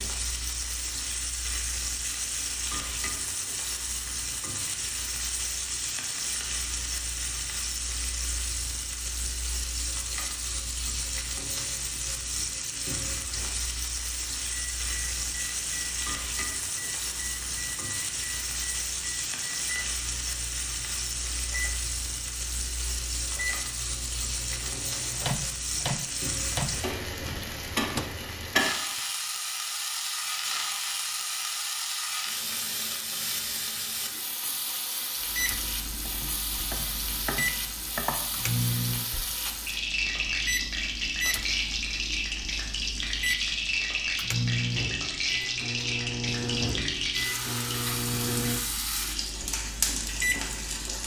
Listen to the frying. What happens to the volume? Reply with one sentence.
The loudness of the frying stays about the same.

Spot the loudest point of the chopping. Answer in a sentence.
The loudest moment of the chopping is at 38 seconds.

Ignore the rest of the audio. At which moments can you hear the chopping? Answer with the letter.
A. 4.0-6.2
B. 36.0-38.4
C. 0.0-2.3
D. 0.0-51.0
B.